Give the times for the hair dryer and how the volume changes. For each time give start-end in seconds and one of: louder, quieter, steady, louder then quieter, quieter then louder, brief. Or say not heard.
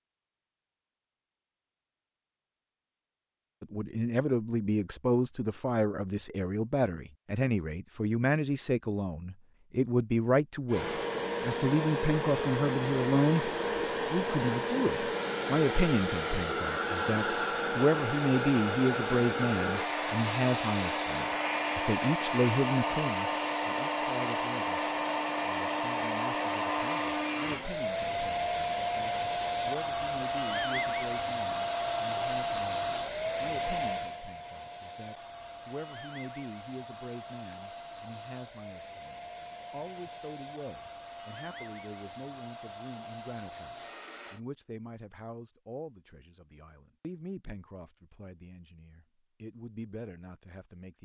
10.7-44.4 quieter.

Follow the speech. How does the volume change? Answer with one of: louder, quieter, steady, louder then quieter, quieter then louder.
quieter.